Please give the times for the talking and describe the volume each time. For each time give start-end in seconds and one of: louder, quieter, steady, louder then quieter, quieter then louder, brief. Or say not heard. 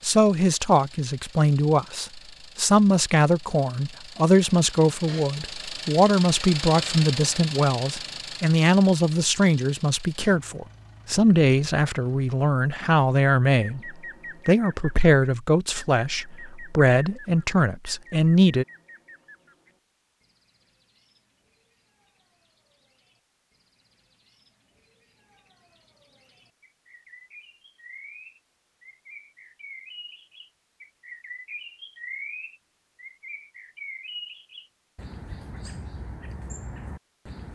0.0-18.6 steady.